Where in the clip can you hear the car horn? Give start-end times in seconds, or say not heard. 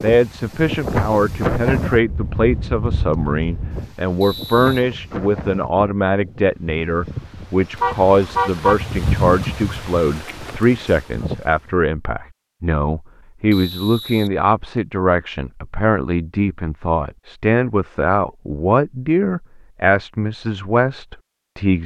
7.8-8.8.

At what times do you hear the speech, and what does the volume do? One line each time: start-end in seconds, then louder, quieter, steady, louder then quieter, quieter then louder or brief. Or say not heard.
0.0-21.8 steady.